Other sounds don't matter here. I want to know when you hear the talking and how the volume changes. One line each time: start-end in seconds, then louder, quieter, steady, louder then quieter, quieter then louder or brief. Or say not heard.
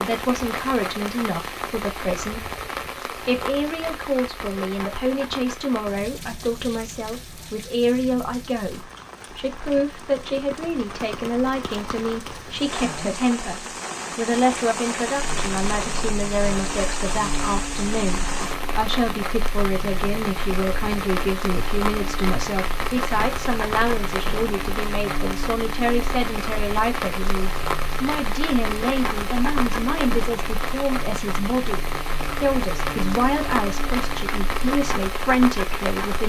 0.1-36.2 steady.